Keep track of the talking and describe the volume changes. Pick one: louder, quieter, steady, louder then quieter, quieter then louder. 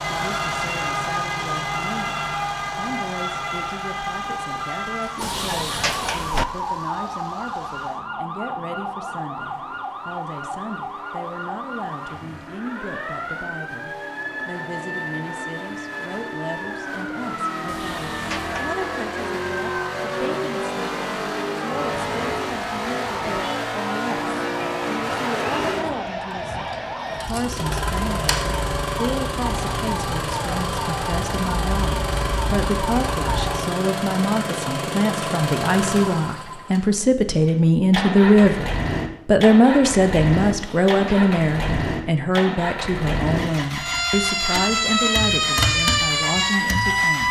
louder.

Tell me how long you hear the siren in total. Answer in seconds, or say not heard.
37 s.